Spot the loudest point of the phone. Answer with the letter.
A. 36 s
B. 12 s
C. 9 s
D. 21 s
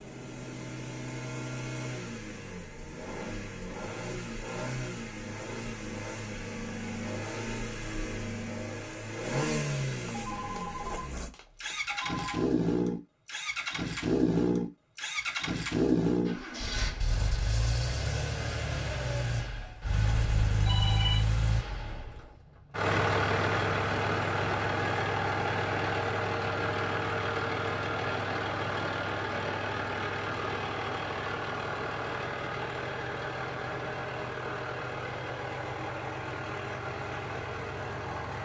D.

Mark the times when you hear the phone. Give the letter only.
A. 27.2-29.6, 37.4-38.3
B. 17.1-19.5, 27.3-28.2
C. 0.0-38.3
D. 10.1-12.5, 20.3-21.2
D.